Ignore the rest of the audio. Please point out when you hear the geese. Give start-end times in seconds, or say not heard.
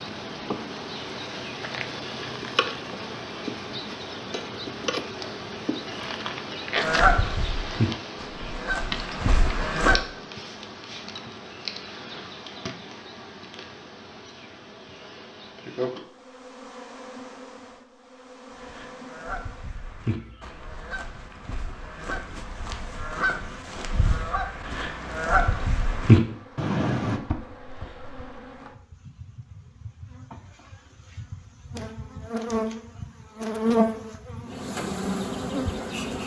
6.8-9.9, 18.5-27.2.